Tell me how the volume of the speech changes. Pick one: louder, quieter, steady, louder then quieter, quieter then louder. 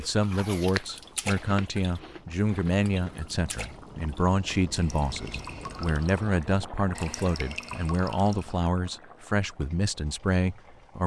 steady.